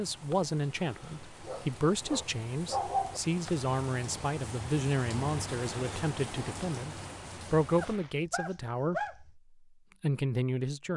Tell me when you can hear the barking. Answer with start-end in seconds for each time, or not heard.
1.4-3.2, 7.8-9.3.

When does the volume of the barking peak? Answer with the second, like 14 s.
3 s.